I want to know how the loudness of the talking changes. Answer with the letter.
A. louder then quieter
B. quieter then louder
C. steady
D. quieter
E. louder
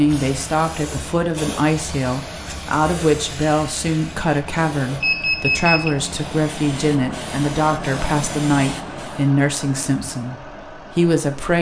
C.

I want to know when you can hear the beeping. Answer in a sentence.
You can hear the beeping from 5.0 to 6.0 s.